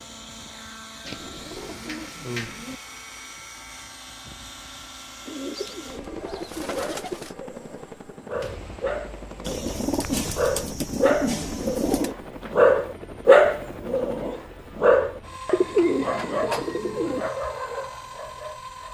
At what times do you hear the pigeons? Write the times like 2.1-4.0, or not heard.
1.1-2.8, 5.2-7.3, 9.4-12.2, 15.5-17.3.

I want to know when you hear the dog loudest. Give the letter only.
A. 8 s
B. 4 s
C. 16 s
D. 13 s
D.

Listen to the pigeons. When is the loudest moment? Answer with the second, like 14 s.
16 s.